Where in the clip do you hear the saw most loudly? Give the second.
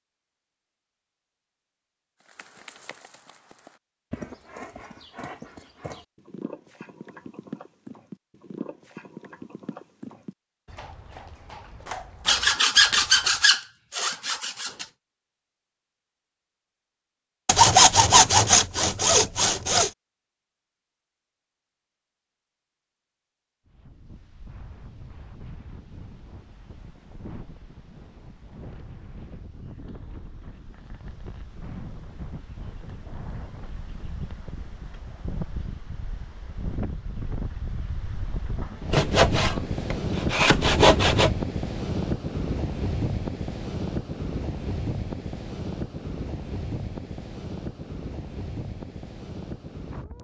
18 s.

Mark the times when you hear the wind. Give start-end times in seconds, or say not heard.
23.6-50.1.